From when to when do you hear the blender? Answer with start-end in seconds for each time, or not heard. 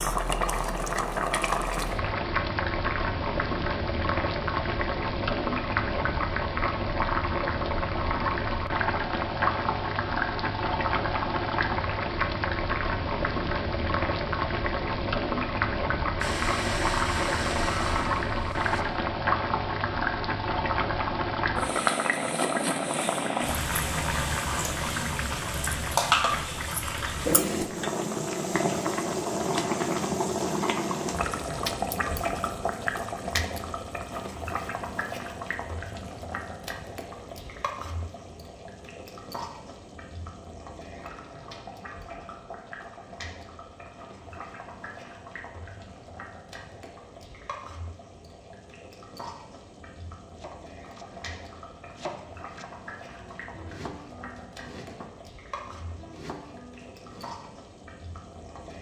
16.2-18.9.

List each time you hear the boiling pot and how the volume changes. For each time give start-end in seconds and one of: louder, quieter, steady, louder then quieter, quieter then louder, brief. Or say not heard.
0.0-58.7 quieter.